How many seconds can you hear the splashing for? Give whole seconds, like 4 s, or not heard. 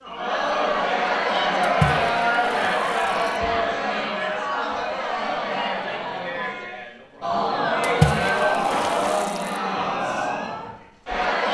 3 s.